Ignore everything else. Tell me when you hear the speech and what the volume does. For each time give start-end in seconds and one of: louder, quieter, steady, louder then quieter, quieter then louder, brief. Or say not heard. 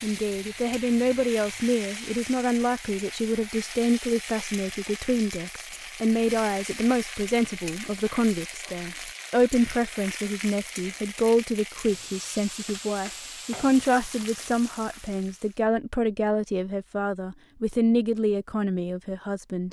0.0-19.6 steady.